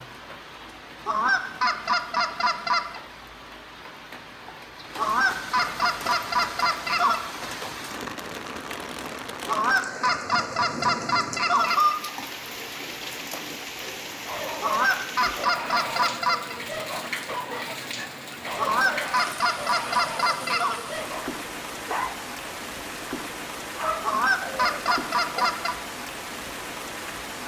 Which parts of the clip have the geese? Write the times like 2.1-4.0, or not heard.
1.1-3.0, 5.0-7.2, 9.4-12.0, 14.6-16.6, 18.6-20.8, 24.0-25.8.